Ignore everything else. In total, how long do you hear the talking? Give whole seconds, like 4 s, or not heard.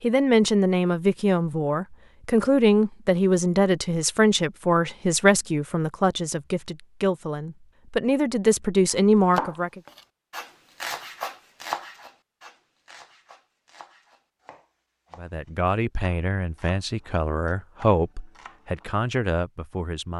15 s.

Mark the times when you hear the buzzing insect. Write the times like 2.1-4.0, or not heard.
not heard.